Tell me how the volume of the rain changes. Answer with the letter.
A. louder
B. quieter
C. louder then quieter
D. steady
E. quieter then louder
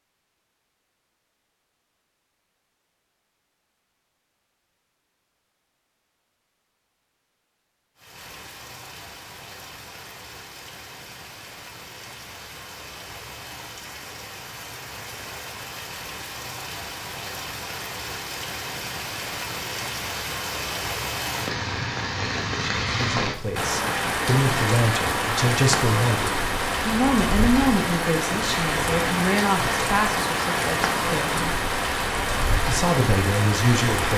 A.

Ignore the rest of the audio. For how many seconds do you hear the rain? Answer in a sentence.
The rain can be heard for 26 seconds in total.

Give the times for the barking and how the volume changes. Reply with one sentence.
You can't hear the barking here.